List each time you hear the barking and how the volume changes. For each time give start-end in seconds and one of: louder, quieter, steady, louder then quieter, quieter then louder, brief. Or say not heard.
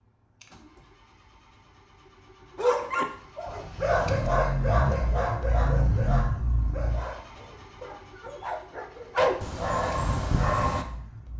2.5-10.8 quieter then louder.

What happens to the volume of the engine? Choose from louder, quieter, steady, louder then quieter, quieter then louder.
louder then quieter.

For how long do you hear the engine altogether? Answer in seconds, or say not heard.
11 s.